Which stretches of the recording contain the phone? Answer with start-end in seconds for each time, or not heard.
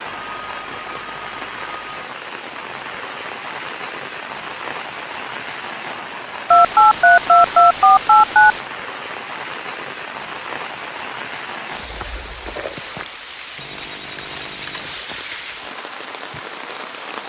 0.1-2.0, 6.5-8.6, 13.6-15.0.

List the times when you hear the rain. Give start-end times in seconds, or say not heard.
0.0-17.2.